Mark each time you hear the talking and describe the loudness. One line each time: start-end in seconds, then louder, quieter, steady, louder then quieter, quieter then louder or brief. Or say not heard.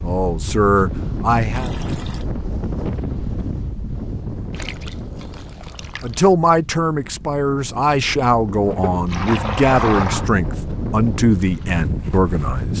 0.0-1.7 brief
6.0-12.7 steady.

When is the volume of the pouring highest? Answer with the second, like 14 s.
10 s.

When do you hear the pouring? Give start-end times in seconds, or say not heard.
1.5-2.2, 4.5-6.2, 8.7-10.3.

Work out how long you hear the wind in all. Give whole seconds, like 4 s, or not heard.
13 s.